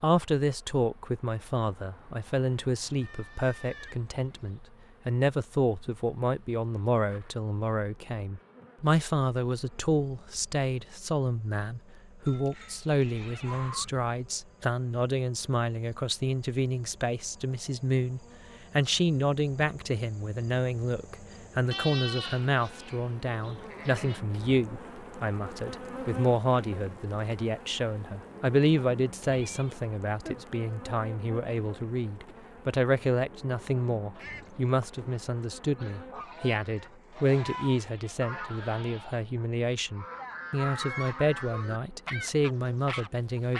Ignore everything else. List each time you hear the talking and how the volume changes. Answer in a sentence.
The talking can be heard from 0.0 to 43.5 s, at a steady volume.